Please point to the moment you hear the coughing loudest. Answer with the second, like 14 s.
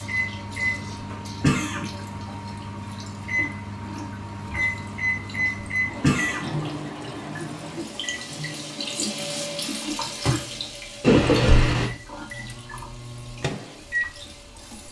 11 s.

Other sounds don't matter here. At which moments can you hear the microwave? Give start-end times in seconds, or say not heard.
0.0-14.8.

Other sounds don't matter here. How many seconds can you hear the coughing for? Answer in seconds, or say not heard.
2 s.